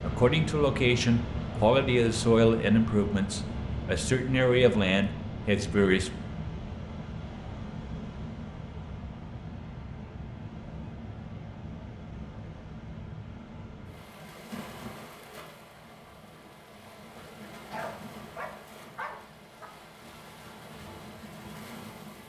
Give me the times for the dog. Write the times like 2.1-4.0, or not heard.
17.7-19.7.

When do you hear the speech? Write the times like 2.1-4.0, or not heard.
0.0-6.2.